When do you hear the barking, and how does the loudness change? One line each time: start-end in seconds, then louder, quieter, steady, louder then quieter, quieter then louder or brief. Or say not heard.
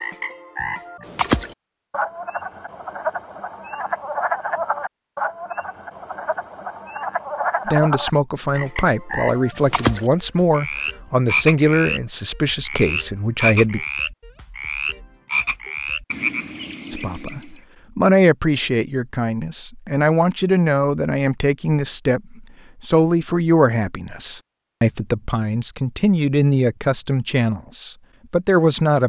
not heard.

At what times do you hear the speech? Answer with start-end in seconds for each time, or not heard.
7.7-13.8, 16.9-29.0.